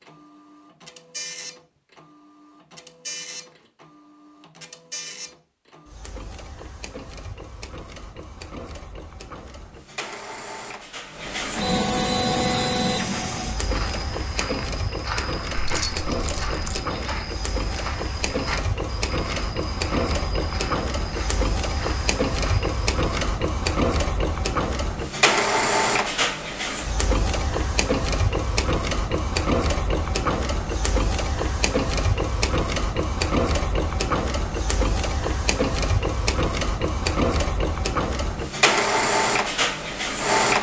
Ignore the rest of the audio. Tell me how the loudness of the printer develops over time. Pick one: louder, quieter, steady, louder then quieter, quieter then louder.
louder.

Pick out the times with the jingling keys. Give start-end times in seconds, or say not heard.
15.6-16.8.